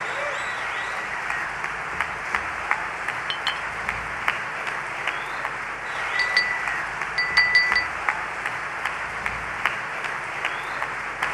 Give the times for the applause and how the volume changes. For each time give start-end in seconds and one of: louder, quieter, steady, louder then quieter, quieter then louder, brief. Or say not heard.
0.0-11.2 steady.